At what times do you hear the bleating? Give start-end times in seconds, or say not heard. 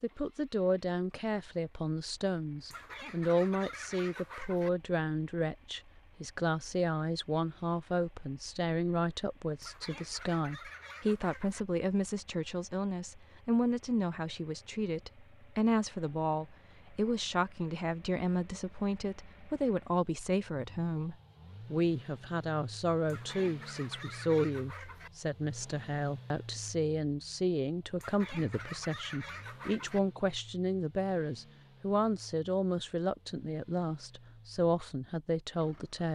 not heard.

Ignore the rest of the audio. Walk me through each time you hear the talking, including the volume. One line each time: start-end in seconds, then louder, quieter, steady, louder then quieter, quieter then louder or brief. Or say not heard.
0.0-36.0 steady.